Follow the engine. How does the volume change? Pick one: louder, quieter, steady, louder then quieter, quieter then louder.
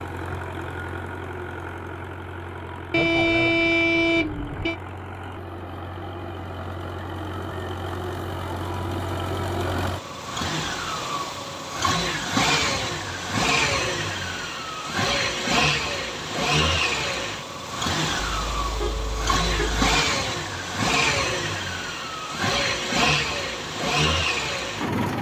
louder.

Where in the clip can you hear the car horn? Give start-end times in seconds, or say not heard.
2.9-4.8, 18.2-19.9.